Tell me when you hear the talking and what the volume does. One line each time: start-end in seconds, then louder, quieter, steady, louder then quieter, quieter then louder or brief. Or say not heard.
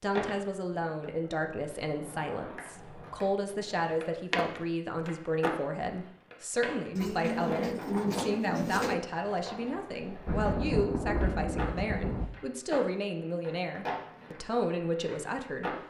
0.0-15.7 steady.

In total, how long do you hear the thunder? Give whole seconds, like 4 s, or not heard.
2 s.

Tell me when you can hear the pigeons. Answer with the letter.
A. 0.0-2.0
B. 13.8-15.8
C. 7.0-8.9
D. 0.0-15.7
C.